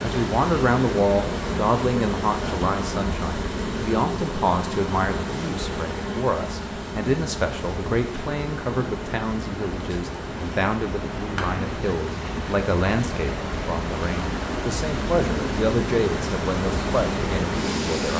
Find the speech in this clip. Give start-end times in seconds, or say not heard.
0.0-18.1.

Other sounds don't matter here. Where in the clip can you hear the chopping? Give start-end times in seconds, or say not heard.
not heard.